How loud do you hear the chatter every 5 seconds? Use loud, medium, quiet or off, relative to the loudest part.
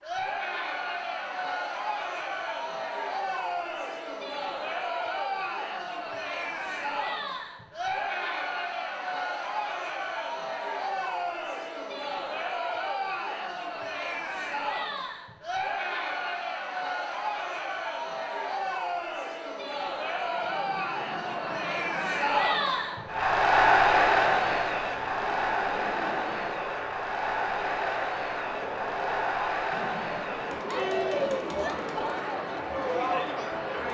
medium, medium, medium, medium, loud, medium, medium.